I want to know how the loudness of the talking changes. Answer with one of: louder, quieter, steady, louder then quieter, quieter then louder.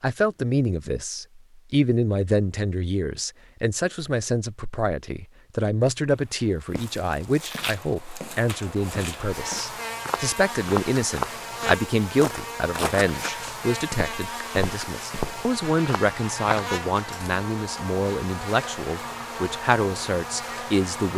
steady.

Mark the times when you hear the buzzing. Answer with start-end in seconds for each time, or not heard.
9.2-21.1.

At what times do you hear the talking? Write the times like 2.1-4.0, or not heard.
0.0-21.1.